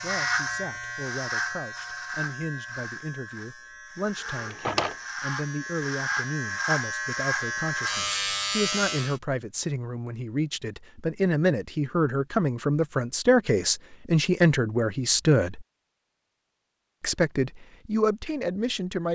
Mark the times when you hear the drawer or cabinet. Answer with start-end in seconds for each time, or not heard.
4.2-5.0.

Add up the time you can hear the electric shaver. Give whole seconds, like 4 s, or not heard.
9 s.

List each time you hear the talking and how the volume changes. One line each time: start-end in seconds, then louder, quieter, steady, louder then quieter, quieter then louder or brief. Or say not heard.
0.0-15.7 louder
17.0-19.1 brief.